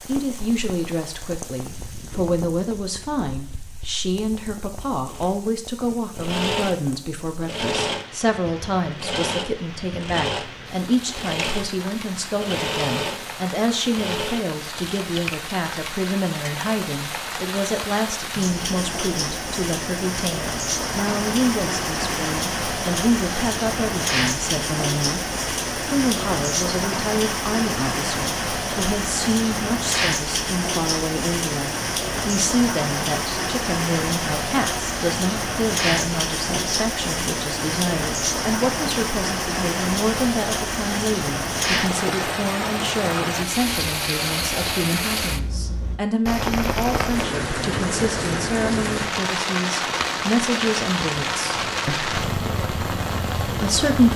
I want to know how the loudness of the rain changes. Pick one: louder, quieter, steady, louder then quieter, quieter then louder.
louder.